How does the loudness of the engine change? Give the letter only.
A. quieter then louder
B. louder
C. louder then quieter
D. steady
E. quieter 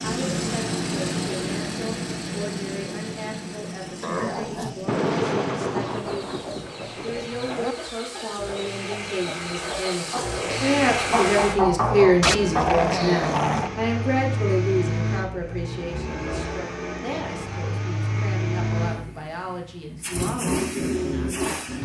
A.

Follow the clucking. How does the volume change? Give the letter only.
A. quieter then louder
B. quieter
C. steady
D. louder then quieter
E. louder
E.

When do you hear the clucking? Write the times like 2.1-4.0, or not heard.
5.8-13.3.